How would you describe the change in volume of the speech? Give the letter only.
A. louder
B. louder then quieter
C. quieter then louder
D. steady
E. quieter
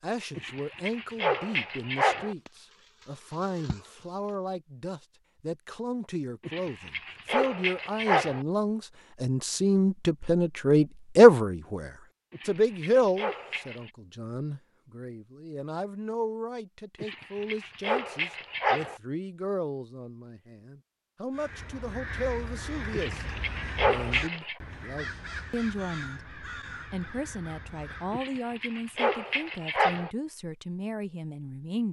B.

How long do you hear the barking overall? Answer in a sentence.
The barking can be heard for 11 seconds in total.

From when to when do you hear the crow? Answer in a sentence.
You can hear the crow from 21.3 to 28.3 s.